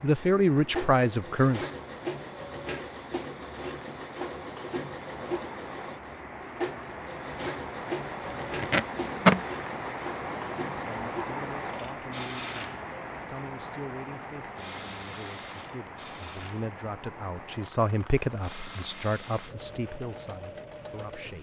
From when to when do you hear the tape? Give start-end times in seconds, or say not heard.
8.4-9.4.